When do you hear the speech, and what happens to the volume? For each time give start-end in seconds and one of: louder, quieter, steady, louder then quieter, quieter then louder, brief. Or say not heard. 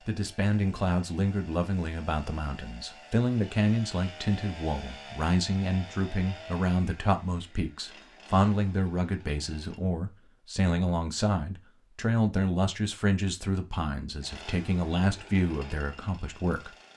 0.1-16.7 steady.